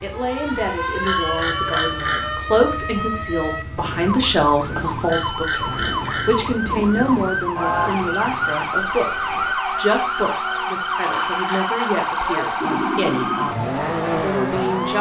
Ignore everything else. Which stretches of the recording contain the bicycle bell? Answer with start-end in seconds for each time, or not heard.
1.0-2.4, 5.0-6.4, 11.1-11.9.